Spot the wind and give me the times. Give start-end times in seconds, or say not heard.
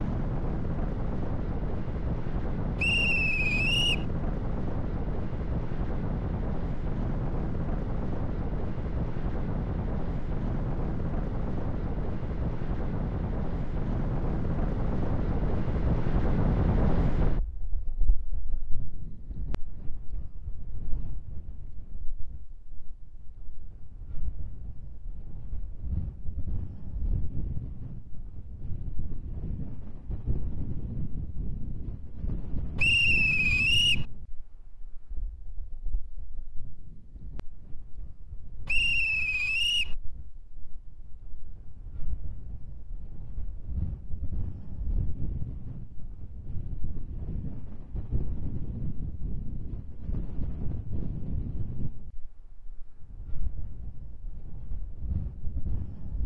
0.0-56.2.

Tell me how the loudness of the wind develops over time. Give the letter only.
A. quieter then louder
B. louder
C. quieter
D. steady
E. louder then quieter
A.